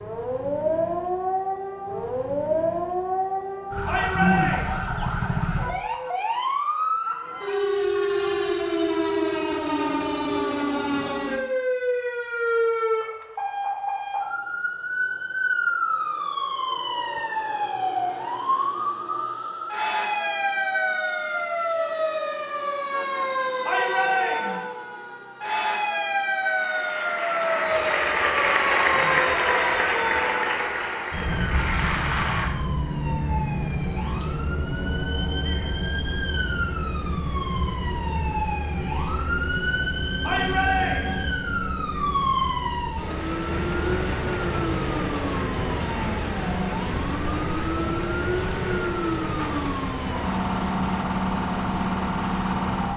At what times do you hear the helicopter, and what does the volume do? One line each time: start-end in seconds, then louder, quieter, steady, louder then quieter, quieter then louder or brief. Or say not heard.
not heard.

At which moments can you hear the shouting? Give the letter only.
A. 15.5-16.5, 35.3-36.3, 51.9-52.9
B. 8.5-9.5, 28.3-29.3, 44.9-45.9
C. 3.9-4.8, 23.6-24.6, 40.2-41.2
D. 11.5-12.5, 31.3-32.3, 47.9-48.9
C.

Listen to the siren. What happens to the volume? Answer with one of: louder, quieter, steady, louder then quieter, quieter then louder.
steady.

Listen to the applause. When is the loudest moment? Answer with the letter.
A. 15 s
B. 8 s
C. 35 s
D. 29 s
D.